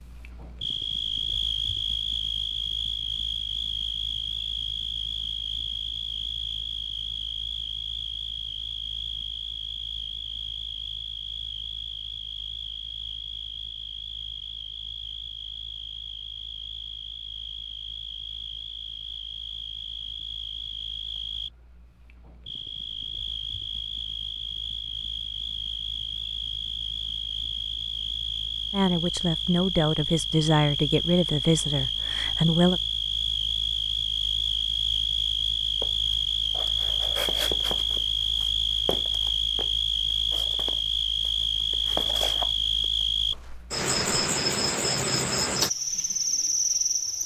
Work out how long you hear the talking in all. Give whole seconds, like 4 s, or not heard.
4 s.